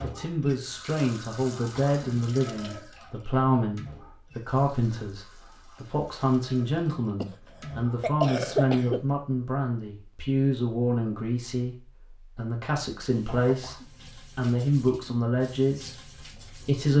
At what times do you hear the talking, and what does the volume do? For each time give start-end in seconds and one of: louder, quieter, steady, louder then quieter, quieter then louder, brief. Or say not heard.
0.0-16.9 steady.